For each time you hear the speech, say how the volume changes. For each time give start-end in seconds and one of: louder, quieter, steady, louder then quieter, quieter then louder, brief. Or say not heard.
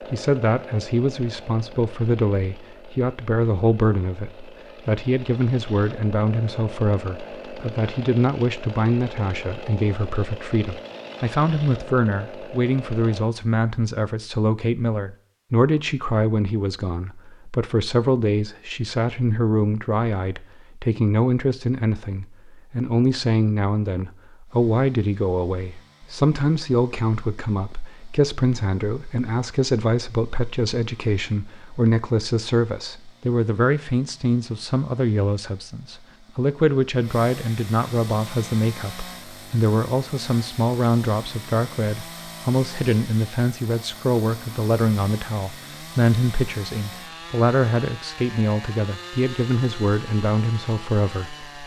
0.1-51.6 steady.